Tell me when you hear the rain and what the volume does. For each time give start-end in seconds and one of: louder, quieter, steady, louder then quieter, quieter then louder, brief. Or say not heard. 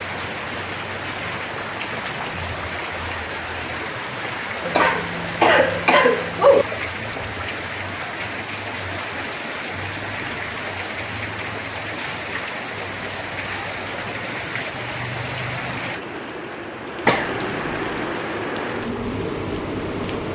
0.0-20.3 steady.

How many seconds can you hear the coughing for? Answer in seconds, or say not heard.
3 s.